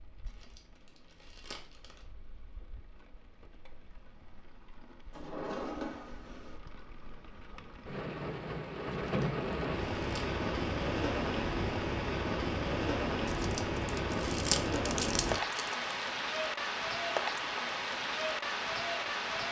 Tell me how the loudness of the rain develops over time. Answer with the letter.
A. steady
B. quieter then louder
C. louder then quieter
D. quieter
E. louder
E.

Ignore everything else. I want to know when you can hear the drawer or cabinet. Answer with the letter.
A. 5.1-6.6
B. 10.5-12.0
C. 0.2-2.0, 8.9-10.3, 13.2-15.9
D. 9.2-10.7
A.